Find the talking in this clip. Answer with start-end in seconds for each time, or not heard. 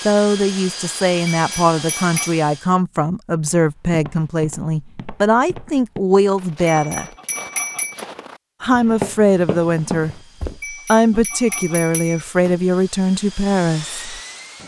0.1-7.0, 8.6-14.0.